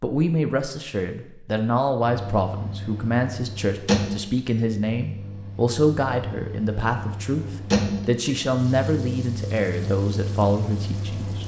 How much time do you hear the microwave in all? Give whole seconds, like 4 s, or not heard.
9 s.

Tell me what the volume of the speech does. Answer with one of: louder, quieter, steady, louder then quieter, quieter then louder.
steady.